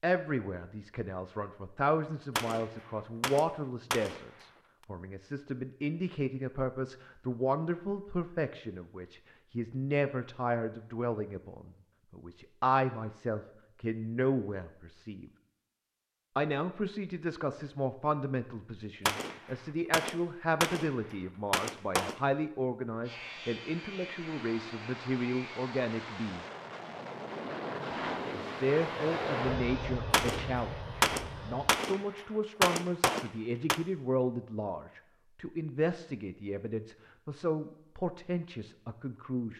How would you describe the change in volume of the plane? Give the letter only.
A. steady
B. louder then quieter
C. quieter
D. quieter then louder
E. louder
B.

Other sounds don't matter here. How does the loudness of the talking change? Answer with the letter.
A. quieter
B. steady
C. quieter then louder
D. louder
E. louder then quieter
B.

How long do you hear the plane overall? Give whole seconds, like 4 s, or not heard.
9 s.